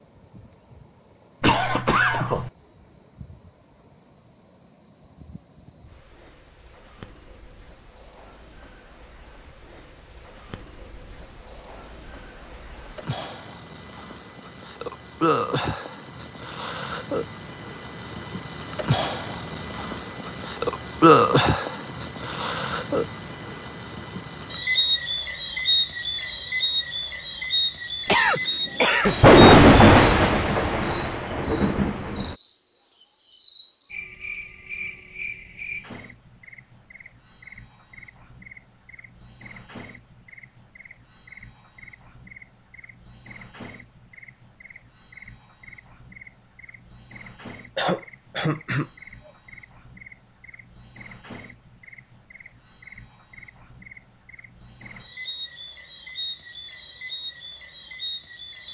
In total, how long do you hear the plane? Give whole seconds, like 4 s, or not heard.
not heard.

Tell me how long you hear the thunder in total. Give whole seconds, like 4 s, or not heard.
3 s.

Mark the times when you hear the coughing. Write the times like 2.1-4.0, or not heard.
1.4-2.5, 28.1-29.1, 47.8-48.9.